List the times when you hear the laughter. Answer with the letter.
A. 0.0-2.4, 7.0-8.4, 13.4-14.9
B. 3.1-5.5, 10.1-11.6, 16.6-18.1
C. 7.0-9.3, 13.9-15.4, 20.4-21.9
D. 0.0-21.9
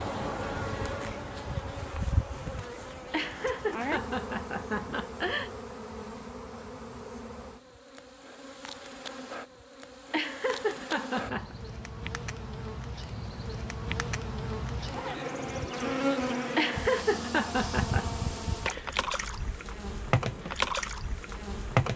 B.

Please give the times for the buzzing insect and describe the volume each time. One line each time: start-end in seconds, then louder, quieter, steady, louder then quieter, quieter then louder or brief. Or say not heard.
0.0-21.9 quieter then louder.